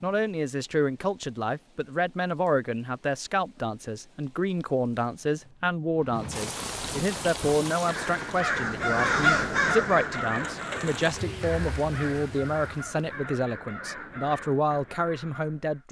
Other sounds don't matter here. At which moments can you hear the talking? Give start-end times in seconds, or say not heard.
0.0-15.8.